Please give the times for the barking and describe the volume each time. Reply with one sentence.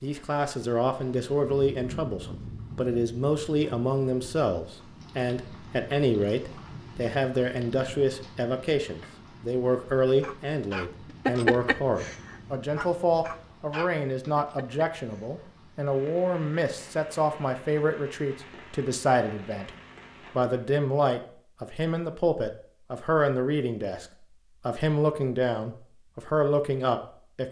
You can hear the barking from 10.2 to 15.4 s, getting quieter.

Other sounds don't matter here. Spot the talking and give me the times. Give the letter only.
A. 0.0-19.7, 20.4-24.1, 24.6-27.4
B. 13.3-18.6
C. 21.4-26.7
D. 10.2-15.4
A.